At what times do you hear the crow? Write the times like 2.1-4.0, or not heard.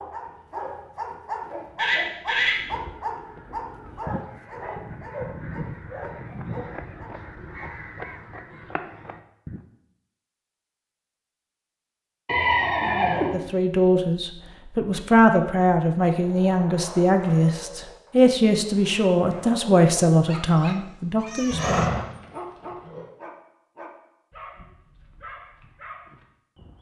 2.4-9.6.